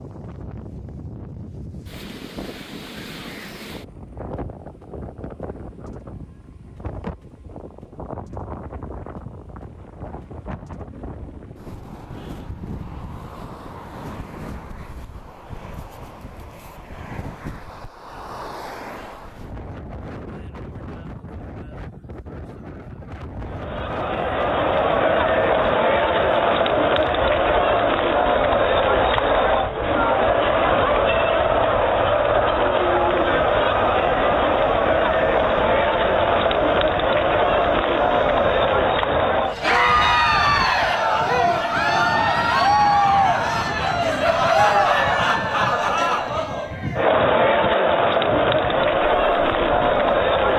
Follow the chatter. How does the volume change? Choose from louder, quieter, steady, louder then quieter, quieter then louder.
steady.